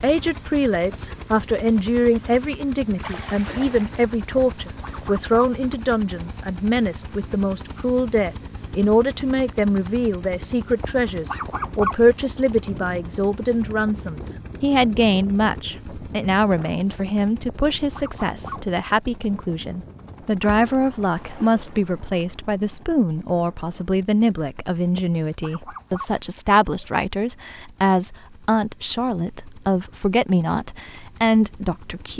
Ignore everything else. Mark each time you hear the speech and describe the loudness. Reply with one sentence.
The speech can be heard from 0.0 to 32.1 s, at a steady volume.